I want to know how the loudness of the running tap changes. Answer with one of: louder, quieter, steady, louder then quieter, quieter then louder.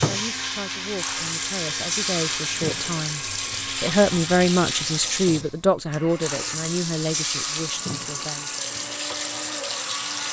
steady.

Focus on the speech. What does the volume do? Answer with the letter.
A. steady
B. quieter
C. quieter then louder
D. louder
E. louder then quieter
E.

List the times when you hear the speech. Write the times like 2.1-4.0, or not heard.
0.0-8.5.